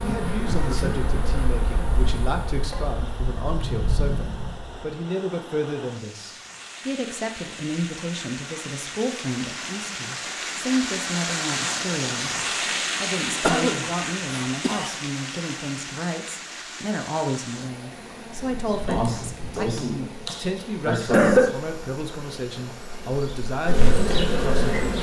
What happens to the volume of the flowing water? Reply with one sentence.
The volume of the flowing water goes up, then down.